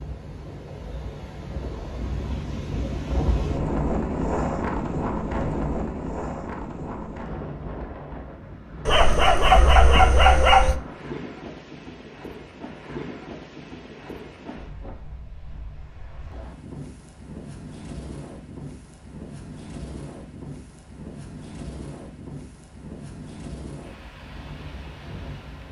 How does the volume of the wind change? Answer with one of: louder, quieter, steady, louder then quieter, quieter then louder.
quieter.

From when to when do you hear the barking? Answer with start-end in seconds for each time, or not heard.
8.8-10.8.